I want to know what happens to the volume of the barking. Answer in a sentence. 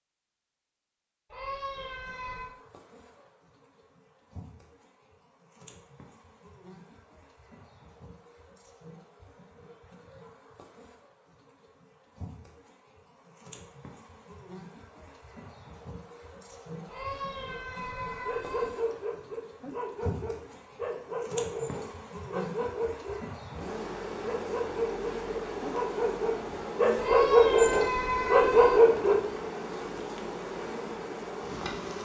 The volume of the barking goes up.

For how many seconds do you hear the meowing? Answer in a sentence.
The meowing can be heard for 5 seconds in total.